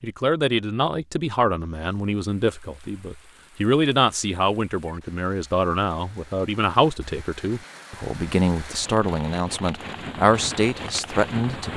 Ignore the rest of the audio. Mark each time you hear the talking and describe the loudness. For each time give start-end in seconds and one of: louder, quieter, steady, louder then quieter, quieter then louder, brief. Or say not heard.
0.0-11.7 steady.